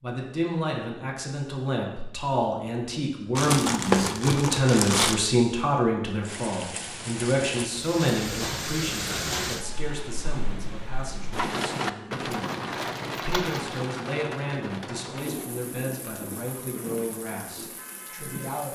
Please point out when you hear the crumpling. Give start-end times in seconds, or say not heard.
3.4-5.2, 12.3-13.8.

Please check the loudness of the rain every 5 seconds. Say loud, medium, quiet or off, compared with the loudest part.
off, loud, loud, medium.